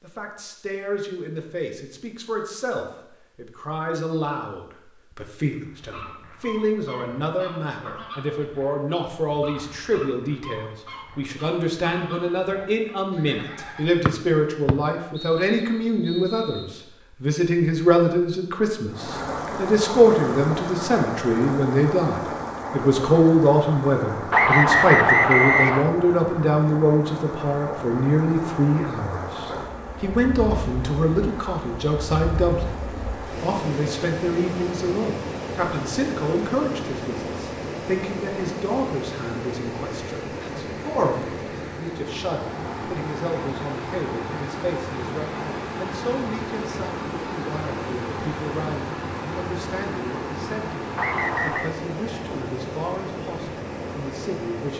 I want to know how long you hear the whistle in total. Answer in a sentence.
The whistle can be heard for 5 seconds in total.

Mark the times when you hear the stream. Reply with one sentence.
The stream can be heard from 18.9 to 54.7 s.